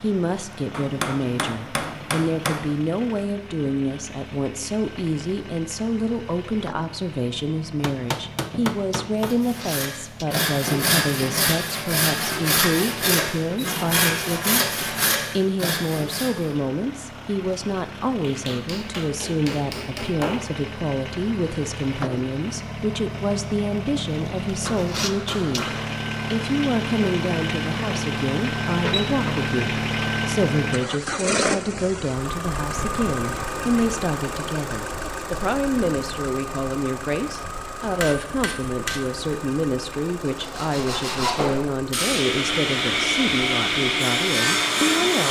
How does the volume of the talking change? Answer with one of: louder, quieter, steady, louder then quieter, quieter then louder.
steady.